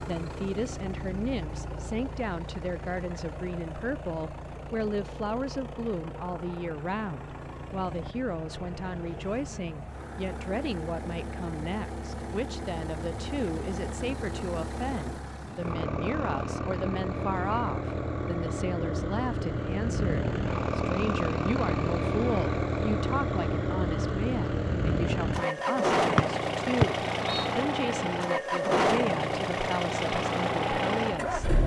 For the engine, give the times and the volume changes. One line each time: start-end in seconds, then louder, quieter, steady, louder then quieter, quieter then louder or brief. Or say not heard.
0.0-31.6 louder.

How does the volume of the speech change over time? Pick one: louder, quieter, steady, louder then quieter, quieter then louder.
steady.